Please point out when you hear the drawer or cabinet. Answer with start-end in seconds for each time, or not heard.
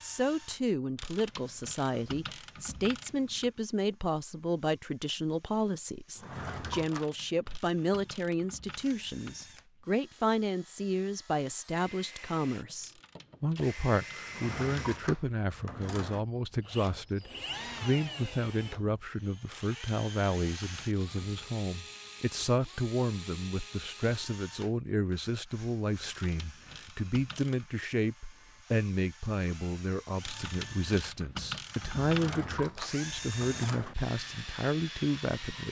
6.2-7.6, 14.2-16.2, 32.0-34.0.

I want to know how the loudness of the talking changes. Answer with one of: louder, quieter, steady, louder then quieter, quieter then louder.
steady.